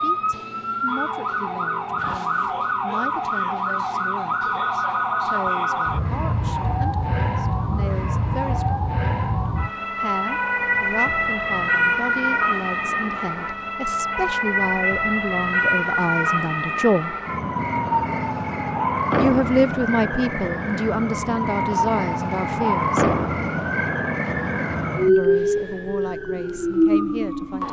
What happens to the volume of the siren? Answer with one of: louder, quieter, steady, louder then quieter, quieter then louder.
steady.